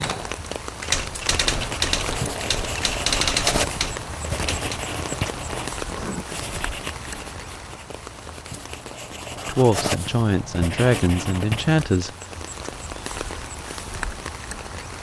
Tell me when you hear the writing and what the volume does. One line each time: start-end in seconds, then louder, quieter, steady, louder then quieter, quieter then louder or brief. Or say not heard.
1.4-11.8 quieter then louder.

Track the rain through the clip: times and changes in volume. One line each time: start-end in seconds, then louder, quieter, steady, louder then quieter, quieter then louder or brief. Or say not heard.
0.0-14.9 quieter then louder.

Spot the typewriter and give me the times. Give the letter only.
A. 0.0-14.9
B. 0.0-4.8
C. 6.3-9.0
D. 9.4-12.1
B.